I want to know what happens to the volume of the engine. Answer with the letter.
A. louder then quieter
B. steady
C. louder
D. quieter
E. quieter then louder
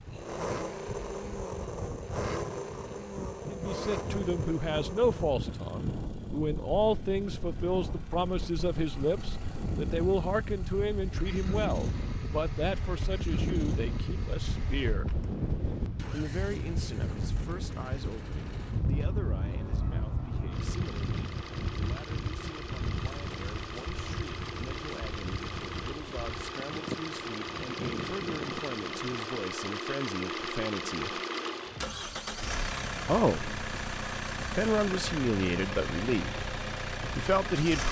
E.